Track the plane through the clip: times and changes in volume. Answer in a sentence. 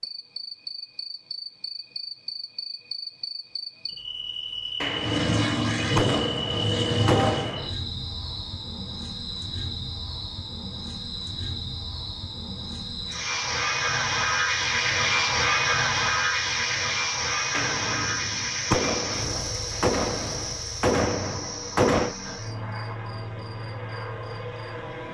You can hear the plane briefly from 4.9 to 7.5 s; and from 13.1 to 25.1 s, getting quieter.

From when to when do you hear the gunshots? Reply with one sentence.
The gunshots can be heard from 4.8 to 7.8 s and from 17.5 to 22.1 s.